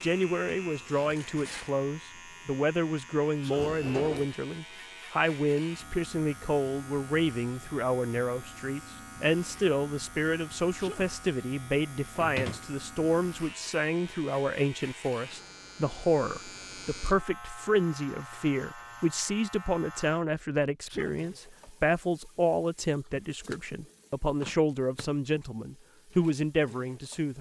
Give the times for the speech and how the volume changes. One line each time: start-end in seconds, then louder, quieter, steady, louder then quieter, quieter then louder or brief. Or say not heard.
0.0-27.3 steady.